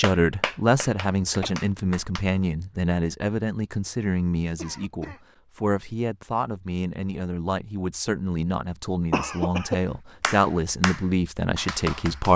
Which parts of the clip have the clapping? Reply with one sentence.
You can hear the clapping from 0.0 to 2.2 s and from 10.2 to 12.3 s.